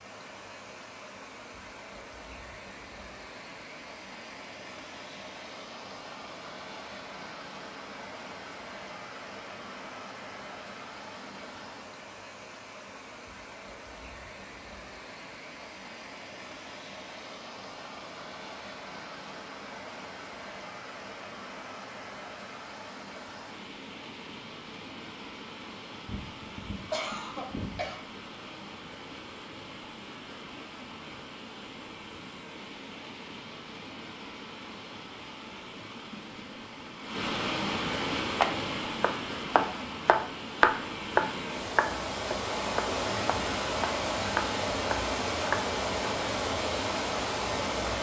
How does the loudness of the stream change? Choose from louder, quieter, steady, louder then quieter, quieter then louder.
louder.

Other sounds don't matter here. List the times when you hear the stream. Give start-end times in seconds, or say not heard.
0.0-47.9.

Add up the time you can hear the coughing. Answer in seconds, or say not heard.
2 s.